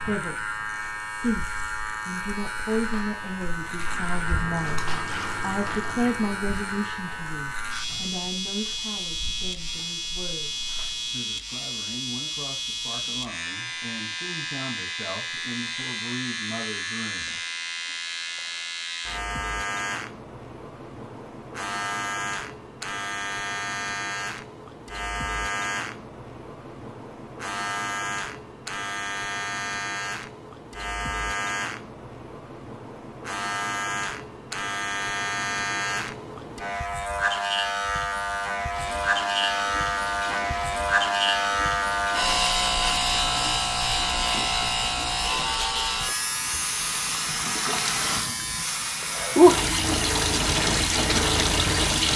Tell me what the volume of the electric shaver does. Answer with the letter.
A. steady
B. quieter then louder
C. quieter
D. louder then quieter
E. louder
E.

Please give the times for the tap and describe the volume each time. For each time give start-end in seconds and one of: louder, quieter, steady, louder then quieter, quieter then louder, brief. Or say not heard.
0.0-11.2 louder then quieter
38.7-52.1 louder.